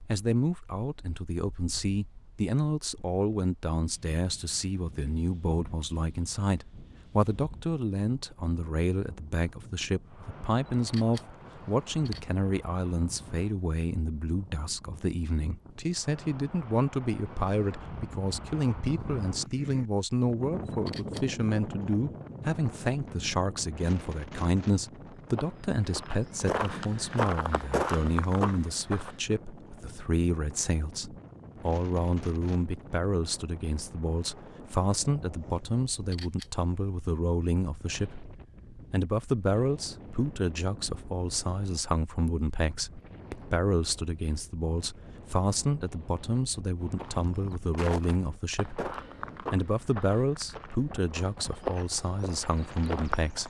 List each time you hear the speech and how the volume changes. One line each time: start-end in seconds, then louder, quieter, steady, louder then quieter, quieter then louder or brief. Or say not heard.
0.1-53.4 steady.